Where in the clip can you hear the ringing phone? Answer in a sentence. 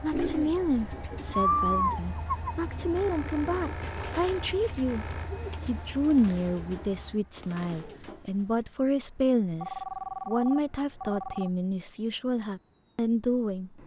The ringing phone can be heard from 3.0 to 5.3 s and from 9.6 to 11.5 s.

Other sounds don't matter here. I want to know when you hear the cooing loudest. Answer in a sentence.
The volume of the cooing peaks at 2 seconds.